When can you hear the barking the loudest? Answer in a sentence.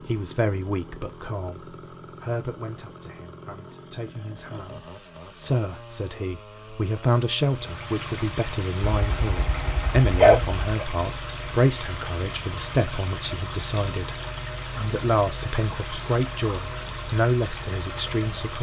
The loudest moment of the barking is at 10 seconds.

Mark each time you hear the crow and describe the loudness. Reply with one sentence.
You can't hear the crow here.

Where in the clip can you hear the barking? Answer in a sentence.
The barking can be heard from 8.8 to 10.8 s.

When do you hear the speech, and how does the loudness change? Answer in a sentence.
The speech can be heard from 0.1 to 18.5 s, getting louder.